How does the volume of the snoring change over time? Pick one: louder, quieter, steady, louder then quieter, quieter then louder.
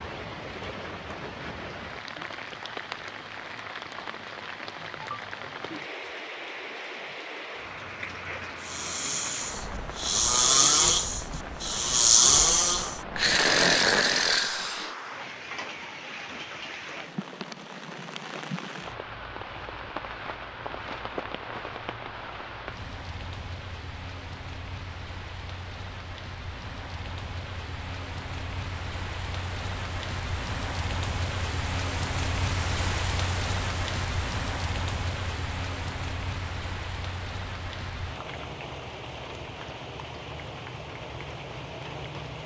louder.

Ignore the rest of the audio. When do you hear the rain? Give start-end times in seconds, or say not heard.
0.0-42.4.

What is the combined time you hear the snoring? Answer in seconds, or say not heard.
6 s.